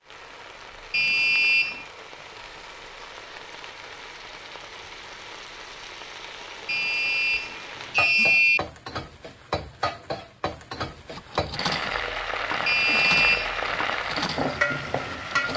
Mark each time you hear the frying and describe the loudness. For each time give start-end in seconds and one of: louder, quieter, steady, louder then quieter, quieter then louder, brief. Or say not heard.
0.0-15.5 louder.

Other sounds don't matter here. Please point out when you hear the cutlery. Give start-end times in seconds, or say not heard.
11.1-15.5.